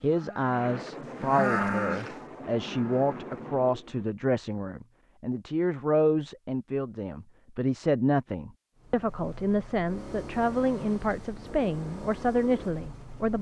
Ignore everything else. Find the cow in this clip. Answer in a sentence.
You can hear the cow from 0.0 to 3.4 s.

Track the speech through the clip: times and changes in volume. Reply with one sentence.
The speech can be heard from 0.0 to 13.3 s, at a steady volume.